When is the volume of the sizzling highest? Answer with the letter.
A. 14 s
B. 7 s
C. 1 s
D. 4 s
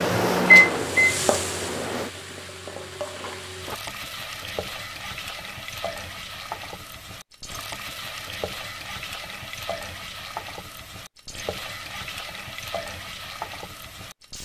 C.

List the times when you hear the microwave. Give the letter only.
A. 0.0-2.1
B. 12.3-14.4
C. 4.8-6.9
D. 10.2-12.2
A.